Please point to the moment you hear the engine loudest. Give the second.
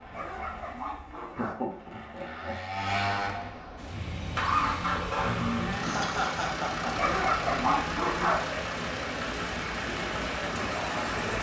5 s.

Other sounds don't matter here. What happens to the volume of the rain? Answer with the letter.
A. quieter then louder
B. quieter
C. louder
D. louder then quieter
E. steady
C.